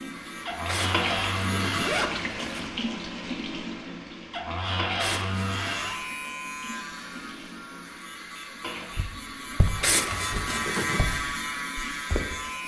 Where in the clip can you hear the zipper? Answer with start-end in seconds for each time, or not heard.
0.7-2.7, 5.0-5.8, 9.8-11.0.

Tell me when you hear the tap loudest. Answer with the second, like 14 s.
1 s.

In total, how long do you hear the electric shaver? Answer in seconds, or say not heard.
9 s.